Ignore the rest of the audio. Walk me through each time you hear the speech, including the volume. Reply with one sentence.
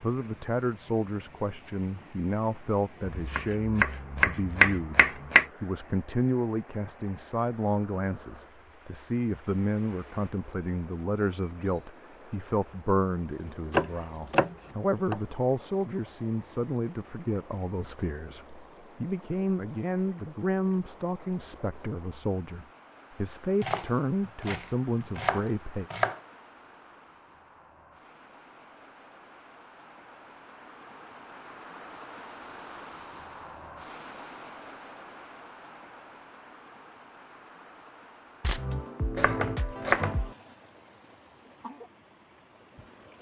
You can hear the speech from 0.0 to 25.9 s, at a steady volume.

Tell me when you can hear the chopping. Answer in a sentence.
The chopping can be heard from 3.0 to 5.5 s, from 13.7 to 15.2 s, from 23.6 to 26.2 s and from 38.4 to 40.3 s.